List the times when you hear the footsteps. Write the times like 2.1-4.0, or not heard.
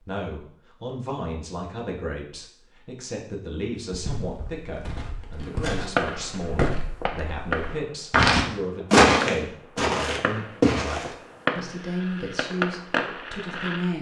3.9-11.2.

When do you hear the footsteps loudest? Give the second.
9 s.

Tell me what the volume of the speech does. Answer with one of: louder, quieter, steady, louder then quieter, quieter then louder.
steady.